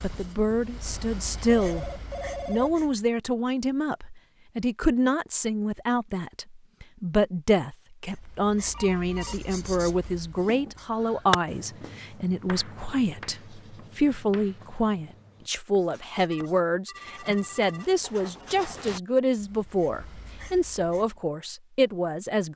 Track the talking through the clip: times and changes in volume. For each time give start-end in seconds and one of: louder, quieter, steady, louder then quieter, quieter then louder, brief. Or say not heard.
0.0-1.9 brief
2.5-22.5 steady.